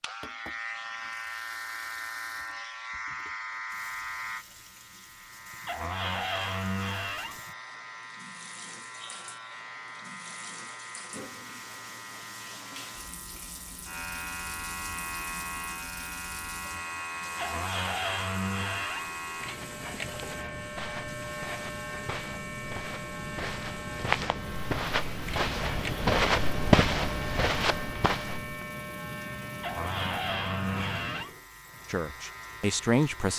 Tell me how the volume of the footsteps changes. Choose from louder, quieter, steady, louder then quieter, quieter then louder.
louder.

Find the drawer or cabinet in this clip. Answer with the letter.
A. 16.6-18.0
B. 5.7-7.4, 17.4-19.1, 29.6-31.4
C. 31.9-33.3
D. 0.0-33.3
B.